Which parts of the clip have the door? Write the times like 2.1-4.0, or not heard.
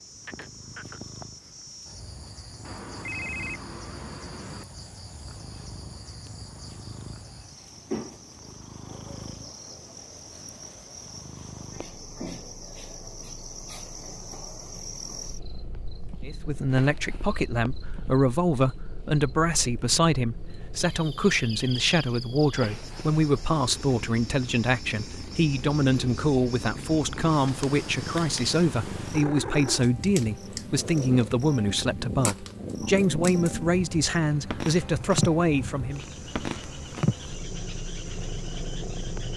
not heard.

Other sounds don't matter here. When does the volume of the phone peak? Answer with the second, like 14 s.
3 s.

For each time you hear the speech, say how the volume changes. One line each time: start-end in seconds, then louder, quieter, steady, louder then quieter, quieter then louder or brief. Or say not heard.
16.2-36.0 steady.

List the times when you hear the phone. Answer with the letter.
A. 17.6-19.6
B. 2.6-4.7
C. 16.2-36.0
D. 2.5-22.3
B.